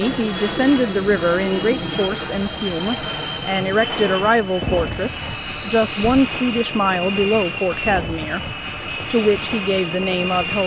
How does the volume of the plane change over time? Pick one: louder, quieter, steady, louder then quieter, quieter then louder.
steady.